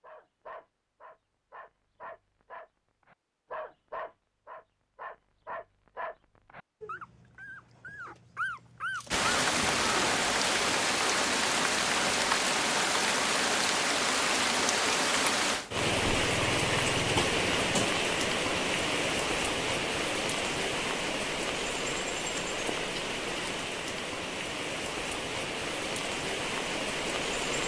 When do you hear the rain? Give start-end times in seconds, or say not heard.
9.1-27.6.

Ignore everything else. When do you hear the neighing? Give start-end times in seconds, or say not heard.
not heard.